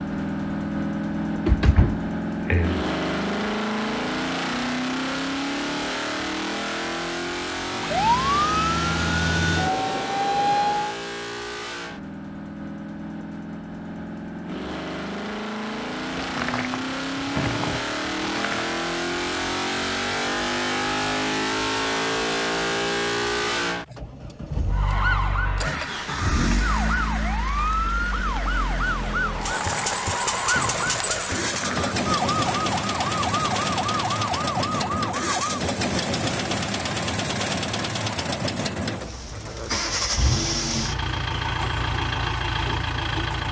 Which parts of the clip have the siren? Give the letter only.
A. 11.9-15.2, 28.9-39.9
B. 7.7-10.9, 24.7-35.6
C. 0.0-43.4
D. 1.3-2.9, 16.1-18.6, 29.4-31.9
B.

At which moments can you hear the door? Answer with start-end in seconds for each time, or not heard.
1.3-2.9, 16.1-18.6, 29.4-31.9.